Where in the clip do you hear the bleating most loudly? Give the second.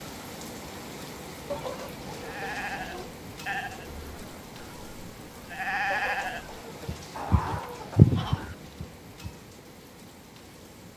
8 s.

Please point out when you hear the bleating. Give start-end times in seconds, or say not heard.
2.2-9.3.